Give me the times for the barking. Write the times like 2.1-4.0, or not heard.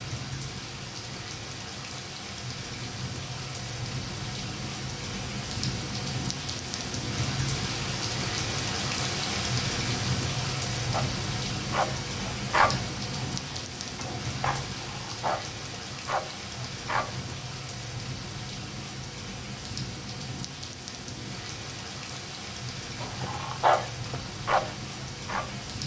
10.9-17.4, 23.0-25.6.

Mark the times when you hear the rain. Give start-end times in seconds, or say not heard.
0.0-25.8.